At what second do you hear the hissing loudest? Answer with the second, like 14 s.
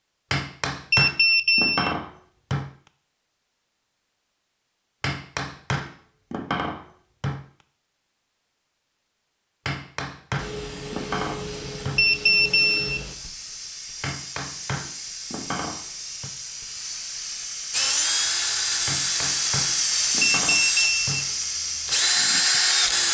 20 s.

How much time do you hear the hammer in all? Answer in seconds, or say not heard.
12 s.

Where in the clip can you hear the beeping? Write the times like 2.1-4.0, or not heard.
0.9-1.9, 11.9-13.0, 20.2-21.1.